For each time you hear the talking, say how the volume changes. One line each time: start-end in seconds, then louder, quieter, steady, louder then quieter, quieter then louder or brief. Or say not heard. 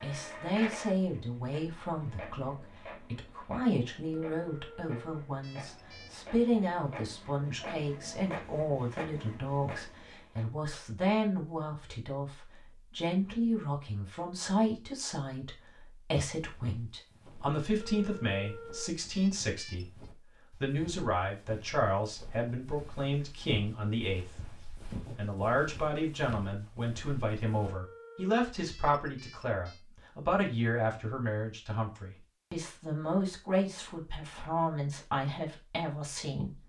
0.0-36.6 steady.